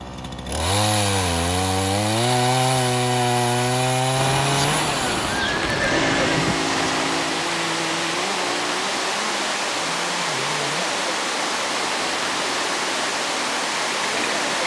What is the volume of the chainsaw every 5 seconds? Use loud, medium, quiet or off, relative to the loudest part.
loud, medium, quiet.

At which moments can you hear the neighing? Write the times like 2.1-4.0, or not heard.
5.2-7.0.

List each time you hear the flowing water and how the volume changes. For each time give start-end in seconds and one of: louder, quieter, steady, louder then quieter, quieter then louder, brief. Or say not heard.
4.1-14.6 steady.